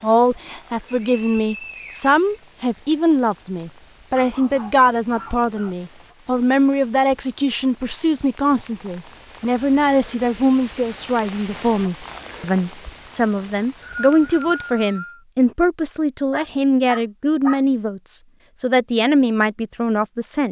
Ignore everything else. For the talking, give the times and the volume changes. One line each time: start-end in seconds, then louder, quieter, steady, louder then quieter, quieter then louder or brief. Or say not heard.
0.0-20.4 steady.